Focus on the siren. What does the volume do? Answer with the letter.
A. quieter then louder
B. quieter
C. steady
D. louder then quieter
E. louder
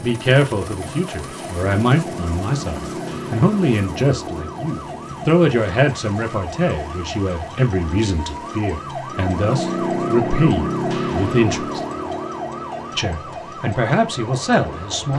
D.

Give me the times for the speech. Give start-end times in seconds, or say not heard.
0.0-11.8, 12.9-15.1.